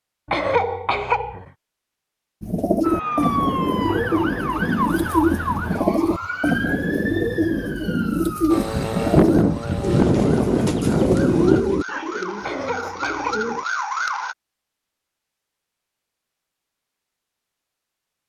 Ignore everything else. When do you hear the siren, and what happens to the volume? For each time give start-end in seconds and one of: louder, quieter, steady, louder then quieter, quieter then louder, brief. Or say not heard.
2.8-14.3 quieter then louder.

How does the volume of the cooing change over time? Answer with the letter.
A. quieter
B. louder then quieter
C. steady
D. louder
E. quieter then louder
C.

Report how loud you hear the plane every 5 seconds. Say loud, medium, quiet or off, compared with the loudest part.
off, loud, loud, off.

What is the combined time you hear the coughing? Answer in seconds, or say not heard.
2 s.